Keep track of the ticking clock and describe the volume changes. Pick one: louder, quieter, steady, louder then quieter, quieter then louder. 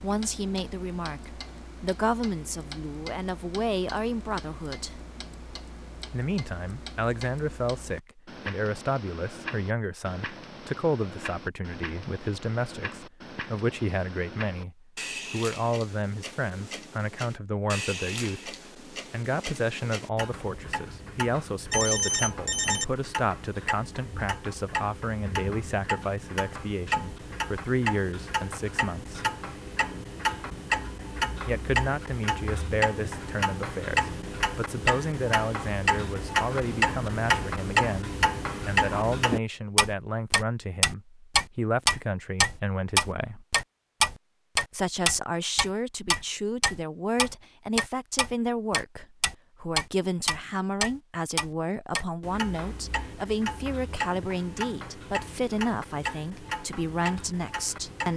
louder then quieter.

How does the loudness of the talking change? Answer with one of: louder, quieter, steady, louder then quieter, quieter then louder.
steady.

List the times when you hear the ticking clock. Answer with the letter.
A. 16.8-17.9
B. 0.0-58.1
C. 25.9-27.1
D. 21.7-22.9
B.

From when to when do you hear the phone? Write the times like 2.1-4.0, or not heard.
21.7-22.9.